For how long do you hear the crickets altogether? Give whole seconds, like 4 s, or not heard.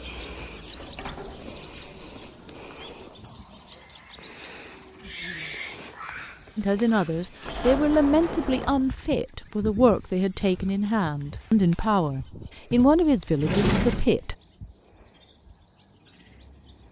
17 s.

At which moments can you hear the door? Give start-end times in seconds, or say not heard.
0.7-3.1, 7.5-8.9, 12.7-14.1.